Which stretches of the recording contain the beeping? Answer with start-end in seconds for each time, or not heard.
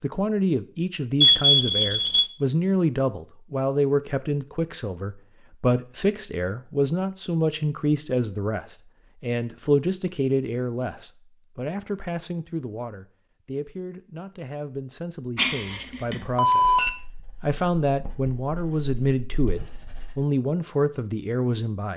1.2-2.3, 15.3-16.9.